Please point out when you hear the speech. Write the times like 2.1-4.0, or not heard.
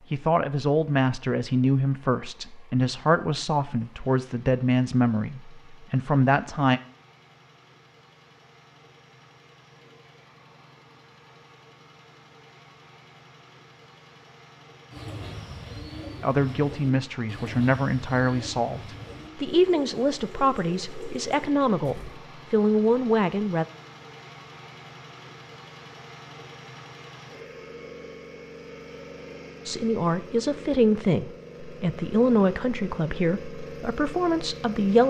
0.1-6.8, 16.2-23.6, 29.6-35.0.